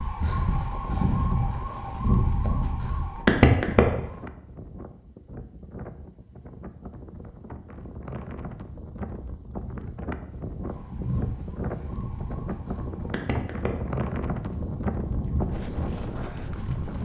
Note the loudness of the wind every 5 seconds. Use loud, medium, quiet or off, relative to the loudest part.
medium, medium, loud, loud.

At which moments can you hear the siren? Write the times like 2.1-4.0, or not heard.
0.0-4.0, 10.7-17.0.